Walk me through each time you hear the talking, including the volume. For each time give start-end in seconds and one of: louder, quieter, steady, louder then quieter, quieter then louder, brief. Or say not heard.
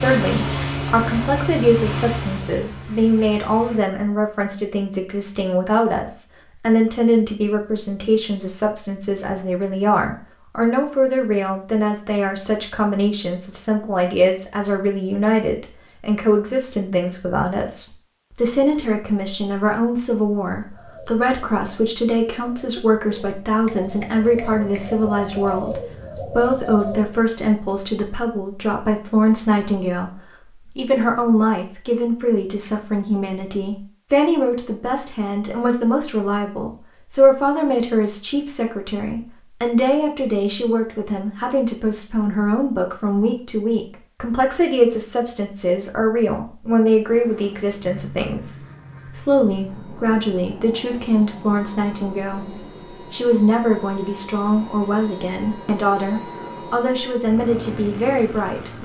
0.0-58.7 steady.